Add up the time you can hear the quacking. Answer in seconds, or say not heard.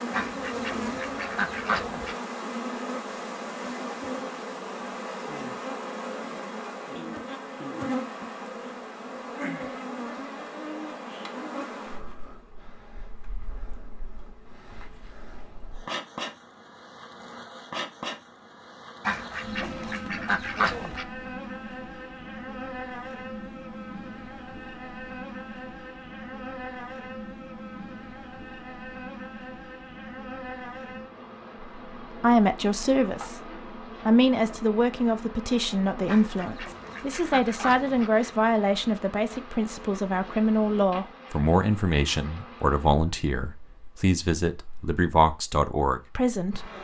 6 s.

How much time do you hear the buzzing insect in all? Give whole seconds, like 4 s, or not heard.
47 s.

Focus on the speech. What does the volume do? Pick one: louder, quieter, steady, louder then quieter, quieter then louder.
steady.